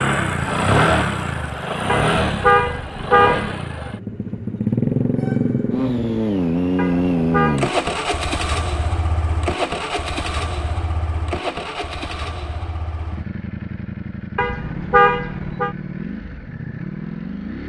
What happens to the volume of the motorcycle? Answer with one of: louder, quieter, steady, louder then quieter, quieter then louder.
quieter.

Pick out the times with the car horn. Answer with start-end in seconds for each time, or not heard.
1.9-3.5, 6.8-7.7, 14.3-15.7.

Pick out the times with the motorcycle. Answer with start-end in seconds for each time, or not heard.
0.0-17.6.